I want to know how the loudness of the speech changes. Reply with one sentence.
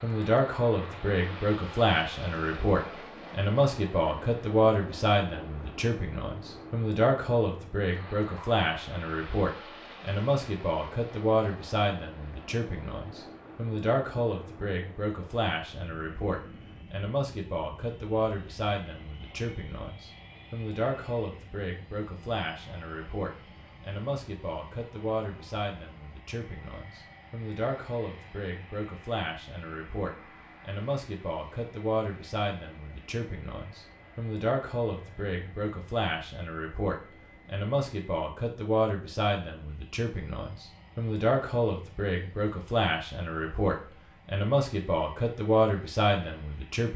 The volume of the speech goes down, then up.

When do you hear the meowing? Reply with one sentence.
The meowing can't be heard in this clip.